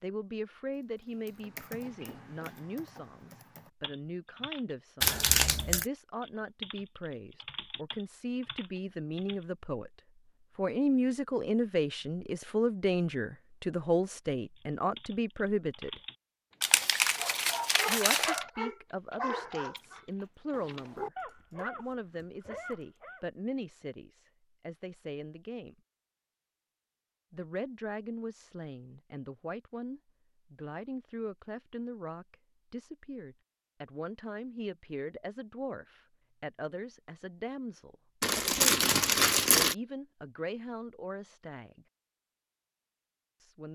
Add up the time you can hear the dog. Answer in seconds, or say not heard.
6 s.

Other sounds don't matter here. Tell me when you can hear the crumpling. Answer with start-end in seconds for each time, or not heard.
5.0-5.8, 16.6-18.4, 38.2-39.8.